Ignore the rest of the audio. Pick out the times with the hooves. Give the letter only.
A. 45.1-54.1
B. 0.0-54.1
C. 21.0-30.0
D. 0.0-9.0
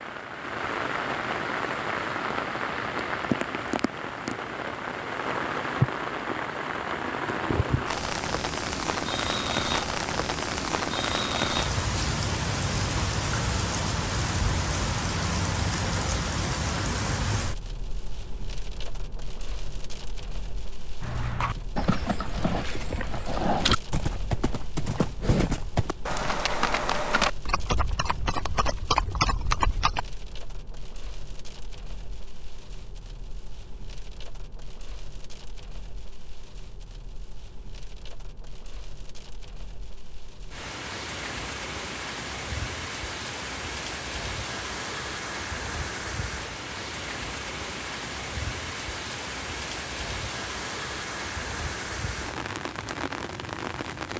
C.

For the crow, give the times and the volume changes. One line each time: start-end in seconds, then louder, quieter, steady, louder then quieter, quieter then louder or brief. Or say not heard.
not heard.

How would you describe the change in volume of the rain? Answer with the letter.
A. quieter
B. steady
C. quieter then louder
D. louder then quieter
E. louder
C.